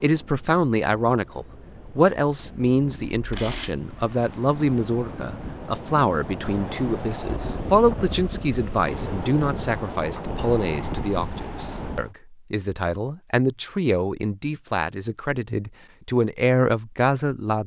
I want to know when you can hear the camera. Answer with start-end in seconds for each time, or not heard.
3.1-3.8.